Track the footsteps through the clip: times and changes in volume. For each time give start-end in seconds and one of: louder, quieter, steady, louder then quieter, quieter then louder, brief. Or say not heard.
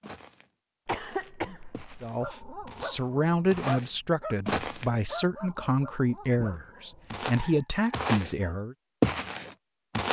0.0-4.9 louder
7.1-8.3 brief
9.0-10.0 brief.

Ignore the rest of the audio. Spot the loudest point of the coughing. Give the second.
1 s.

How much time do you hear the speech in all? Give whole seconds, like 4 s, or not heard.
7 s.